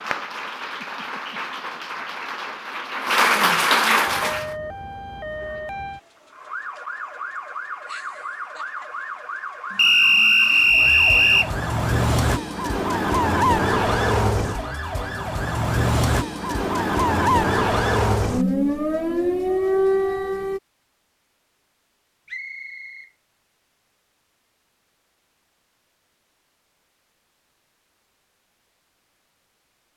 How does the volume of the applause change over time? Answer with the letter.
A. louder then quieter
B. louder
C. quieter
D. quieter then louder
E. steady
B.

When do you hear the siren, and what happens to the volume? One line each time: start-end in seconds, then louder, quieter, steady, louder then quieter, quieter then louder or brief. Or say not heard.
4.0-20.6 louder.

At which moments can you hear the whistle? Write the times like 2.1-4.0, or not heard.
9.8-11.5, 22.2-23.1.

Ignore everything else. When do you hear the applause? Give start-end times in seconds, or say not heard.
0.0-4.5.